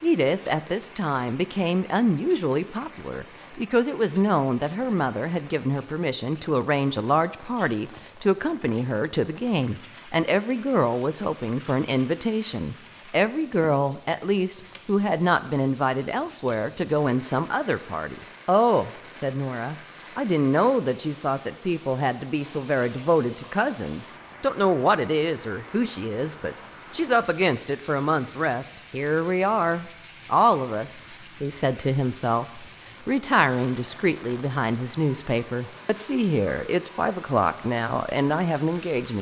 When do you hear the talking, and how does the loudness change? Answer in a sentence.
The talking can be heard from 0.0 to 39.1 s, at a steady volume.